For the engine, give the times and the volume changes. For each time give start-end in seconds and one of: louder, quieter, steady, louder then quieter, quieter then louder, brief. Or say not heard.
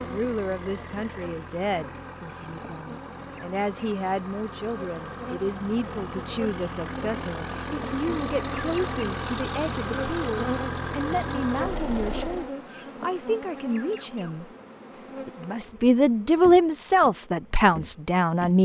0.0-12.5 louder.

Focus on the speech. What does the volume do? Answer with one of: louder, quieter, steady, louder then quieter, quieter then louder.
louder.